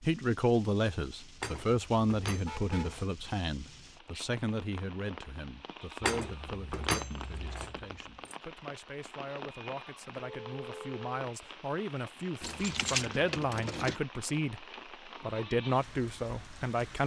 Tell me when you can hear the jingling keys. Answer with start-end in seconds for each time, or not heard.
1.4-3.1, 6.0-8.3, 12.4-14.0.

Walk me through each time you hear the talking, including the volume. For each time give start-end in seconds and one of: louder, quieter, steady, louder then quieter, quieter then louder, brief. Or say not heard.
0.0-17.0 quieter then louder.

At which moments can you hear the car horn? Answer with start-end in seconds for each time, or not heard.
2.5-3.0, 10.2-11.2.